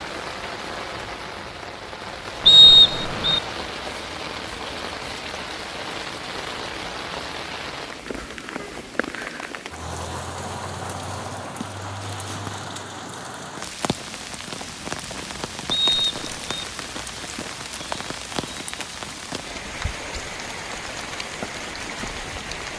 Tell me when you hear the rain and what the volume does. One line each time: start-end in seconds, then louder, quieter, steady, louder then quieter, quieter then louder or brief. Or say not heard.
0.0-22.7 steady.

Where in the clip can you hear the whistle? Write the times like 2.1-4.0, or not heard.
2.5-3.4, 15.7-16.6.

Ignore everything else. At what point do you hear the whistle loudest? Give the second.
3 s.